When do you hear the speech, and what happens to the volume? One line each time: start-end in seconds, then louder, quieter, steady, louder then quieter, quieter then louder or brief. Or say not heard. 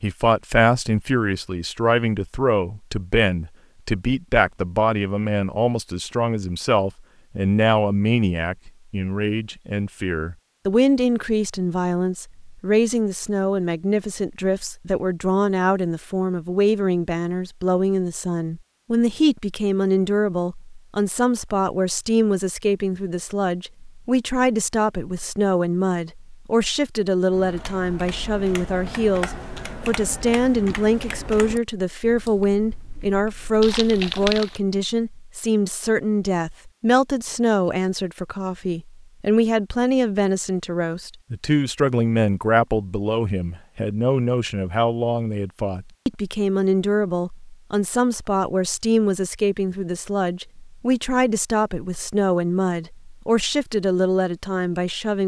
0.0-55.2 steady.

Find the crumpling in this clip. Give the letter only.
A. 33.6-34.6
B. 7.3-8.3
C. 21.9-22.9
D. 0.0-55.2
A.